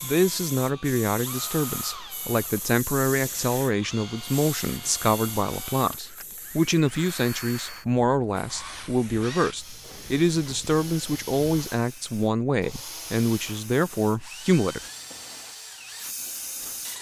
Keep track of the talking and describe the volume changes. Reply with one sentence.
The volume of the talking stays about the same.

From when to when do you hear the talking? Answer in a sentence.
You can hear the talking from 0.0 to 14.8 s.